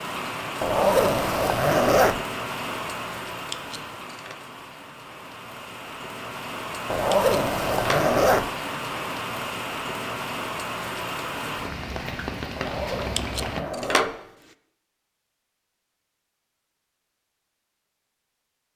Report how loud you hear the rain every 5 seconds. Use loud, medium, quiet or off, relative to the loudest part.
loud, loud, loud, off.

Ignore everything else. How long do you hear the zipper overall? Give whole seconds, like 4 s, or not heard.
5 s.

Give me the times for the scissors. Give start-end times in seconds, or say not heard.
3.5-4.3, 7.1-8.1, 13.2-14.2.